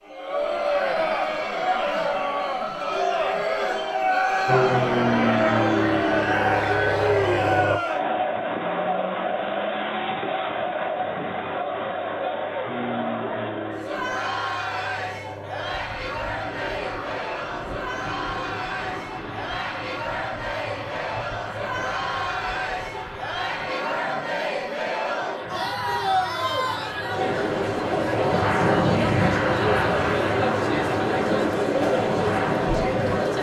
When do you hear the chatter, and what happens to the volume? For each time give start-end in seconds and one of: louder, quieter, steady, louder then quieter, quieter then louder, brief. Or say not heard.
0.0-33.3 quieter then louder.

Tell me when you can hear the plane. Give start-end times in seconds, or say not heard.
4.5-7.8, 12.7-33.3.